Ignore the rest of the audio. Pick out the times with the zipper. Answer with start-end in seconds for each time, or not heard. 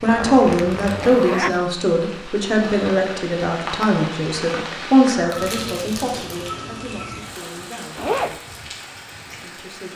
0.1-1.6, 8.0-8.4.